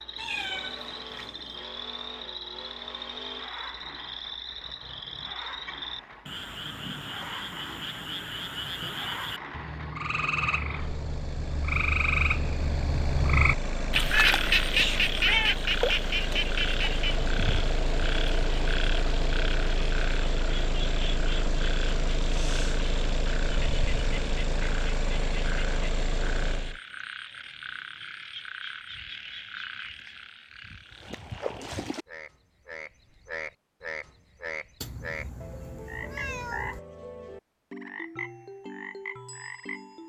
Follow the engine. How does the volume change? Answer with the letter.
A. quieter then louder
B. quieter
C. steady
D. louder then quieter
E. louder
E.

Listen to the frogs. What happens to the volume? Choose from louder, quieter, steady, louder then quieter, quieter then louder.
louder then quieter.